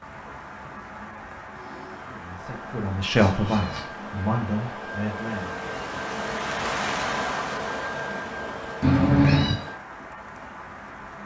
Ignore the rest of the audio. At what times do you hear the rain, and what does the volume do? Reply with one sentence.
The rain can be heard from 0.0 to 11.2 s, getting louder then quieter.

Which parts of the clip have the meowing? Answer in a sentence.
The meowing can be heard from 3.1 to 3.9 s and from 8.8 to 9.6 s.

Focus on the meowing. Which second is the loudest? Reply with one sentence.
The volume of the meowing peaks at 9 seconds.